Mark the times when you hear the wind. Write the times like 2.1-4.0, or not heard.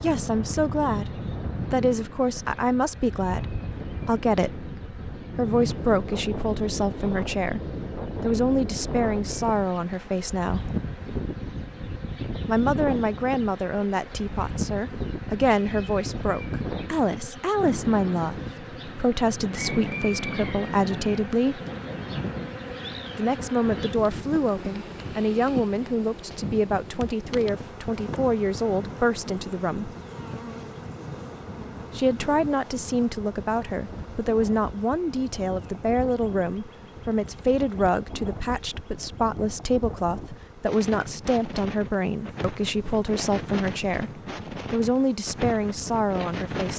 0.0-46.7.